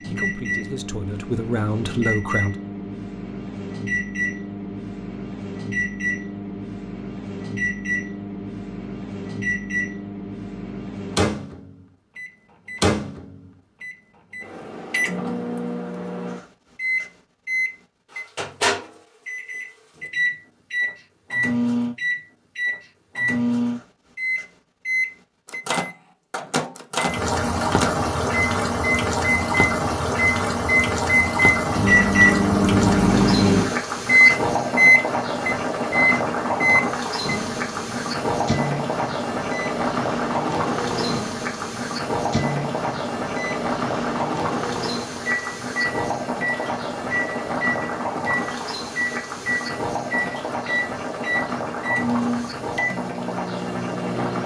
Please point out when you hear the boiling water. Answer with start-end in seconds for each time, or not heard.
27.0-54.4.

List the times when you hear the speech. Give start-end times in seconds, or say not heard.
0.0-2.5.